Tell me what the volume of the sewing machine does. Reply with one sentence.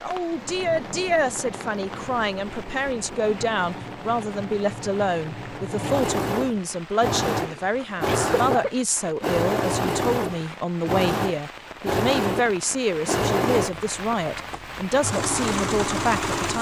The loudness of the sewing machine goes up.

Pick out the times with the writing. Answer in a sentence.
You can't hear the writing here.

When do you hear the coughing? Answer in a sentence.
You can hear the coughing from 7.3 to 8.8 s.